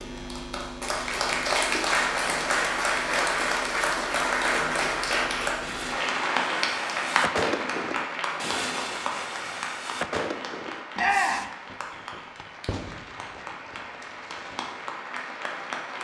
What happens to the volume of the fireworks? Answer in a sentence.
The volume of the fireworks goes down.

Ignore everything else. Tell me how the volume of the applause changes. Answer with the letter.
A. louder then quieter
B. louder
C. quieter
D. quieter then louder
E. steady
C.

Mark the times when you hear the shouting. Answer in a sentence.
The shouting can be heard from 10.9 to 11.5 s.